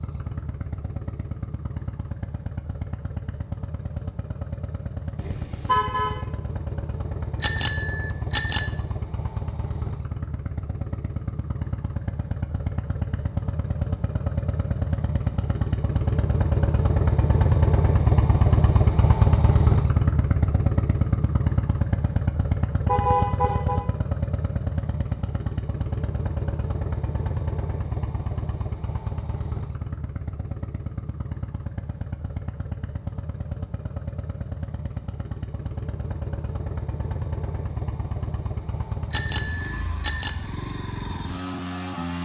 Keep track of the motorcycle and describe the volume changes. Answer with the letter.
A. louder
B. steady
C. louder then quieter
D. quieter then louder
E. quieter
C.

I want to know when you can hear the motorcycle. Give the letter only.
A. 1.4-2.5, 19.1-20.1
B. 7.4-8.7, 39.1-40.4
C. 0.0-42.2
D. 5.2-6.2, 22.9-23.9
C.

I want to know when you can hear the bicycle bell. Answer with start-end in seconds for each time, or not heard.
7.4-8.7, 39.1-40.4.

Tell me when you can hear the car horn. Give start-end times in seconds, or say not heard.
5.2-6.2, 22.9-23.9.